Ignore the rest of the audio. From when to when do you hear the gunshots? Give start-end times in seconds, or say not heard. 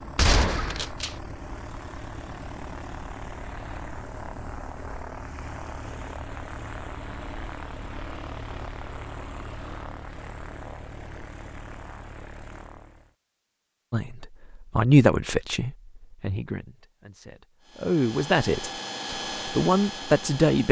0.1-1.1.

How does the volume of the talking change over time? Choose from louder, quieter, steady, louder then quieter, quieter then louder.
quieter then louder.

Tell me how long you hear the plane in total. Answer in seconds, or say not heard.
16 s.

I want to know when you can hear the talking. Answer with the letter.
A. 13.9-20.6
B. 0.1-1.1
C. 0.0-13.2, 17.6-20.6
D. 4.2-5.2
A.